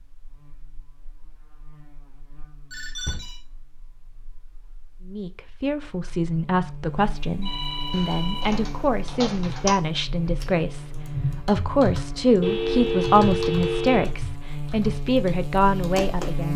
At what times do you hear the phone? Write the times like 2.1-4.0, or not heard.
2.7-3.4, 7.4-8.6, 12.4-14.1.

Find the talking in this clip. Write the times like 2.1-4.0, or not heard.
5.0-16.5.